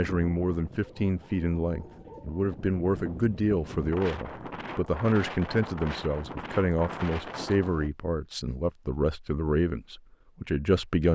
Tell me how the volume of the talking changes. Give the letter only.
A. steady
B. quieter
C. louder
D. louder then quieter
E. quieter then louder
A.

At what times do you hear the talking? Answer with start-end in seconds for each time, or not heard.
0.0-11.1.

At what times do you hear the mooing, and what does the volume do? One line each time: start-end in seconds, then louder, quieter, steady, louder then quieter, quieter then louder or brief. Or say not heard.
not heard.